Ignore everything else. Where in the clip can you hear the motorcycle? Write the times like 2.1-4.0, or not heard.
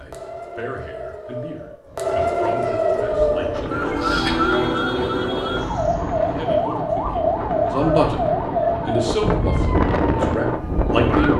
not heard.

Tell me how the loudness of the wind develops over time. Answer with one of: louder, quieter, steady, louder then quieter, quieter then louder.
louder.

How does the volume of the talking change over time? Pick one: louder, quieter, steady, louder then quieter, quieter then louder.
louder.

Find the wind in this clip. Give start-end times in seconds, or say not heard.
3.0-11.3.